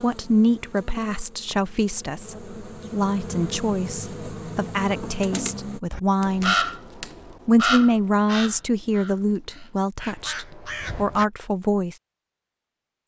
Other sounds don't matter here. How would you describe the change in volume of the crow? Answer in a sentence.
The loudness of the crow goes down, then up.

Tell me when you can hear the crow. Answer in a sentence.
You can hear the crow from 5.9 to 11.2 s.